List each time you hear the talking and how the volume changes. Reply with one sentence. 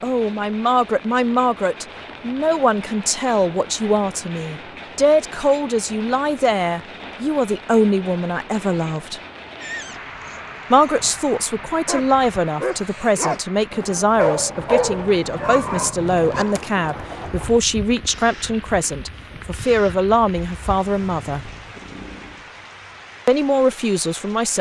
The talking can be heard from 0.0 to 9.2 s, at a steady volume; from 10.7 to 21.5 s, at a steady volume; and briefly from 23.2 to 24.5 s.